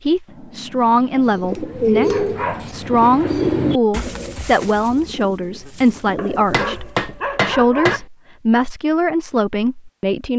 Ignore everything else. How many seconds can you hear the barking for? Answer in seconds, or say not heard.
3 s.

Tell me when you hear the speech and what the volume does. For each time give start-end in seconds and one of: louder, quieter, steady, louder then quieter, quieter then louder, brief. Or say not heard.
0.1-10.3 steady.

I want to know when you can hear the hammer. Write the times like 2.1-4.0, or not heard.
0.2-2.5, 6.5-8.1.